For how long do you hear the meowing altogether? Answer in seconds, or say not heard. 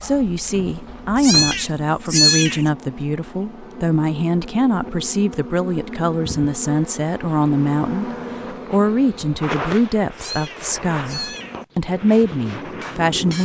3 s.